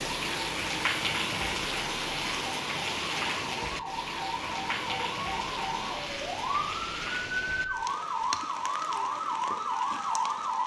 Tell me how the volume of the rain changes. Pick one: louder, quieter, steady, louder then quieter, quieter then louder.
quieter.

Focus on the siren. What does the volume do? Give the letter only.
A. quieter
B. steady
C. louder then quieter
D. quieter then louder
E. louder
E.